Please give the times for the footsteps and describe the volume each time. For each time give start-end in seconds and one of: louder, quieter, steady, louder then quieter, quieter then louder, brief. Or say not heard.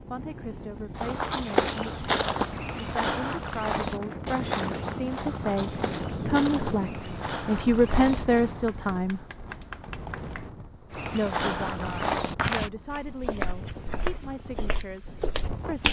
0.9-8.2 quieter
10.9-15.8 quieter.